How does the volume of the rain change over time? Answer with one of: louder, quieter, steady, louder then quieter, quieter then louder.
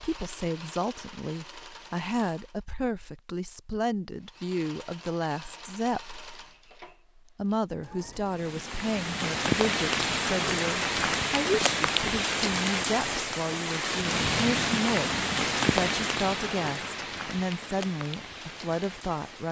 quieter.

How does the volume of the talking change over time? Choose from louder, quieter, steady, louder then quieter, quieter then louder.
steady.